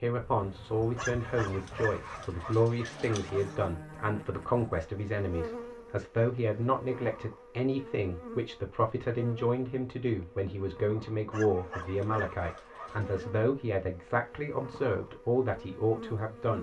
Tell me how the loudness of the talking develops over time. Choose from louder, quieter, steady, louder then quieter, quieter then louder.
steady.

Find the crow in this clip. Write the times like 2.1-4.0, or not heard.
not heard.